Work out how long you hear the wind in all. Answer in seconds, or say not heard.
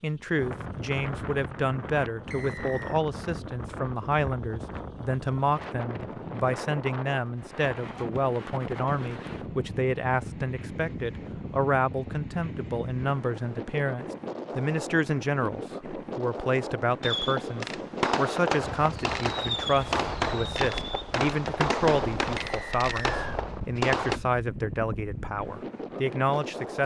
27 s.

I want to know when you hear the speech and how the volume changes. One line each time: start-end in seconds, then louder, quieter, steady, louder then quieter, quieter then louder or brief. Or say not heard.
0.0-26.8 steady.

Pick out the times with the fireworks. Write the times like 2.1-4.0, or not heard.
17.0-24.2.